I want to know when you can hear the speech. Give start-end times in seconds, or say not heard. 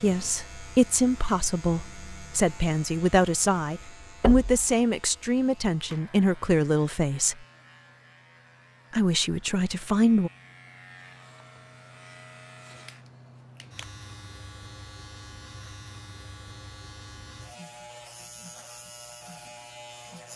0.0-7.3, 8.9-10.3.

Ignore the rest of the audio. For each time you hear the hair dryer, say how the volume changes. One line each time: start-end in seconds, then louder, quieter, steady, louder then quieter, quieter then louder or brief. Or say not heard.
not heard.